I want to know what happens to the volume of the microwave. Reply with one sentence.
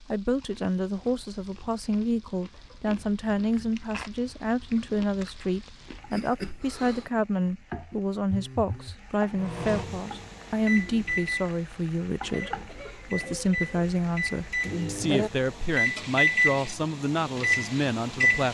The volume of the microwave goes down, then up.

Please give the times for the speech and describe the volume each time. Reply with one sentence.
You can hear the speech from 0.1 to 18.4 s, at a steady volume.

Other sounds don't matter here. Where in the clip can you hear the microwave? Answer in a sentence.
You can hear the microwave from 9.3 to 18.4 s.